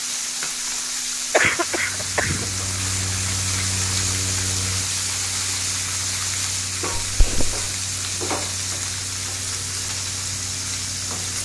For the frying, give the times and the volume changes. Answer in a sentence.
The frying can be heard from 0.0 to 11.4 s, at a steady volume.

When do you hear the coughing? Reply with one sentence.
You can hear the coughing from 1.3 to 2.5 s and from 7.0 to 7.6 s.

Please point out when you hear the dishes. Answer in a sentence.
The dishes can't be heard in this clip.